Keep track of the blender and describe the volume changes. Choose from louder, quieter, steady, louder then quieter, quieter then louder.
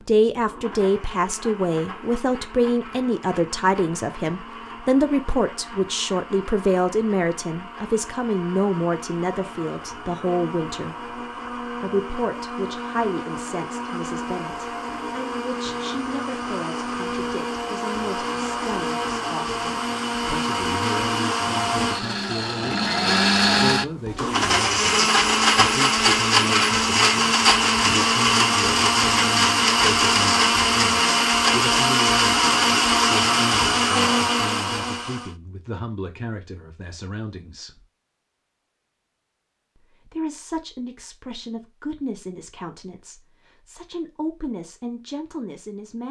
louder.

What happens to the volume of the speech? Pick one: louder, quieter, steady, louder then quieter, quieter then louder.
quieter.